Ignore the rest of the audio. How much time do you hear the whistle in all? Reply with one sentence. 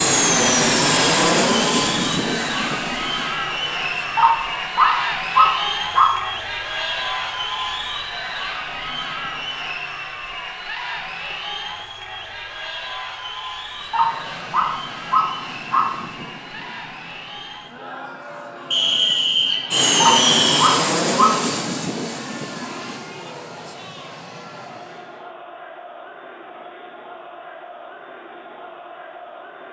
The whistle can be heard for 2 seconds in total.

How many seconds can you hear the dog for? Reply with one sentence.
You can hear the dog for 5 seconds altogether.